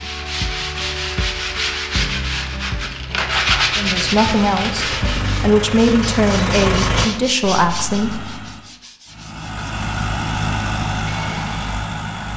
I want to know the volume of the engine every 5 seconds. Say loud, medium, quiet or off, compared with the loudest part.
medium, loud, loud.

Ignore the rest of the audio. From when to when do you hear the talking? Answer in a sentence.
You can hear the talking from 3.8 to 8.3 s.